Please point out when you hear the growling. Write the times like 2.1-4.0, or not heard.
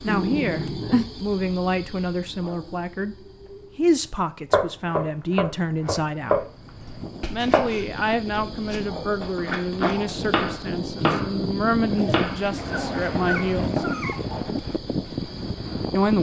0.1-1.1, 11.9-14.2.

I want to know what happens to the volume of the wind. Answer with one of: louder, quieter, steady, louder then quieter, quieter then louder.
louder.